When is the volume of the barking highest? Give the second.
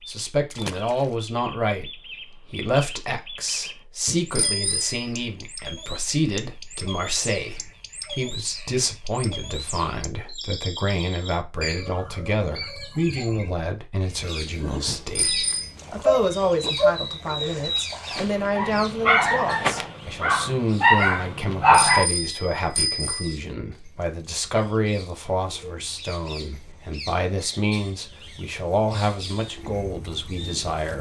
22 s.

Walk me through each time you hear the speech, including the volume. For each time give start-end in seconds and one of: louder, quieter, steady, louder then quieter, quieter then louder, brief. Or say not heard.
0.1-30.9 steady.